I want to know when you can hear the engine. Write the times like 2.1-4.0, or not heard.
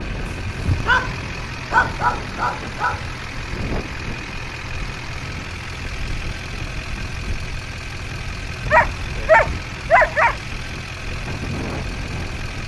0.0-12.6.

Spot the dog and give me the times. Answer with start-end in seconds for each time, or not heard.
0.3-1.1, 1.7-3.1, 8.7-10.3.